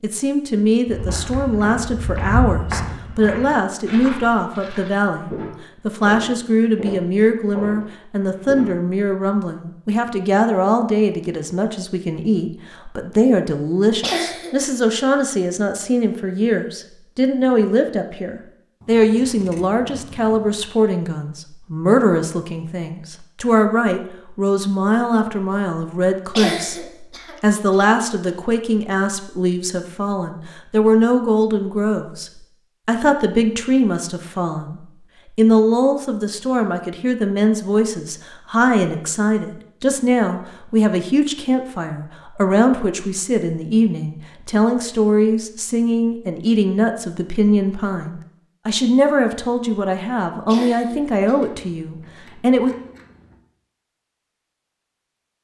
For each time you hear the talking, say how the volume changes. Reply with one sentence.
The talking can be heard from 0.0 to 52.7 s, at a steady volume.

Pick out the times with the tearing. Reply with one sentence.
The tearing can't be heard in this clip.